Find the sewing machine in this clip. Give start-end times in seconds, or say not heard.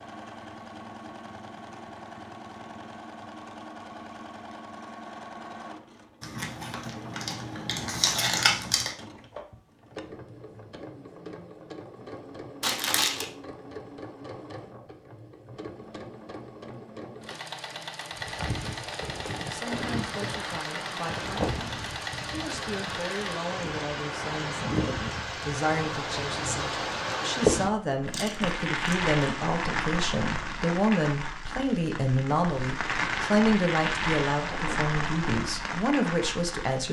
0.0-23.4.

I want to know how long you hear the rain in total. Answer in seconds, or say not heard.
19 s.